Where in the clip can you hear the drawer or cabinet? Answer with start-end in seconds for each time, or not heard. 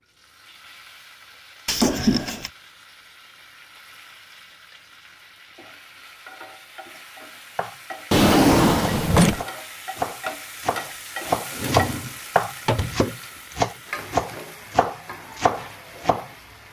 1.6-2.5, 8.1-9.4, 11.6-12.9.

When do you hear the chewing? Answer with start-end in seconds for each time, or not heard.
not heard.